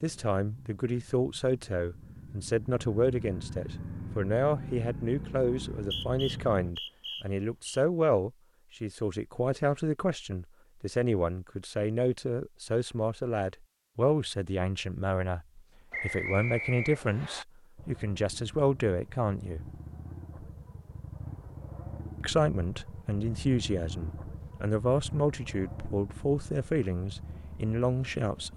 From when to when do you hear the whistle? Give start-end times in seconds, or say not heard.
5.8-7.8, 15.9-17.4.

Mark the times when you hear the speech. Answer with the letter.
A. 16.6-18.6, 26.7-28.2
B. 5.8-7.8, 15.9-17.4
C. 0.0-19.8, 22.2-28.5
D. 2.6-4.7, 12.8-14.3
C.